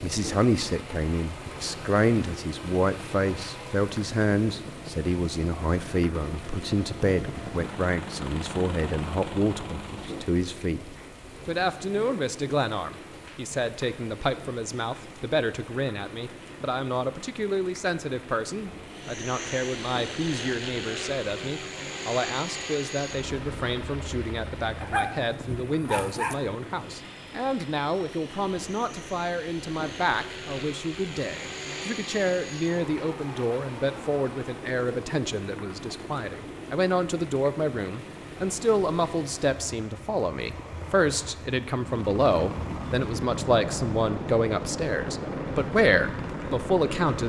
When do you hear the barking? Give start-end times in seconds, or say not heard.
24.8-26.4.